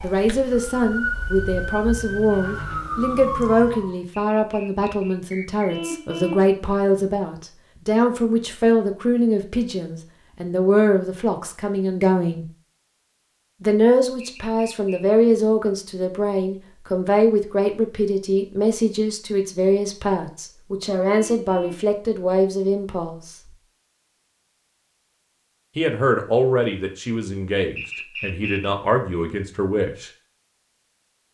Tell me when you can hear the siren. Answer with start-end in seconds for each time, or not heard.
0.0-4.0.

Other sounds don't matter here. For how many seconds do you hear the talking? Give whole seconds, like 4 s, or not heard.
27 s.